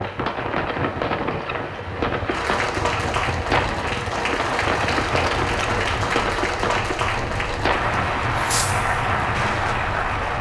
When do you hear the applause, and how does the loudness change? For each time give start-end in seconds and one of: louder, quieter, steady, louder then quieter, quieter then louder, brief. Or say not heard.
0.0-10.3 louder.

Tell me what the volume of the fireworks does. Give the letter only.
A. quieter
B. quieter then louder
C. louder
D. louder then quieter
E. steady
E.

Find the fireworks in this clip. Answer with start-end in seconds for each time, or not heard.
0.0-9.8.